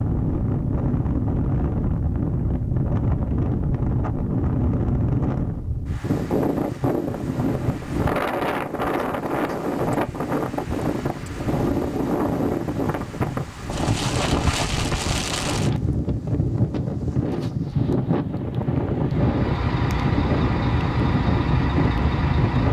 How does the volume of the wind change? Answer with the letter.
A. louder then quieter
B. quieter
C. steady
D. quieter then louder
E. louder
C.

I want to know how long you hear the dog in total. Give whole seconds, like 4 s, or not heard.
not heard.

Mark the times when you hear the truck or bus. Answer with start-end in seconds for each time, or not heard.
19.1-22.6.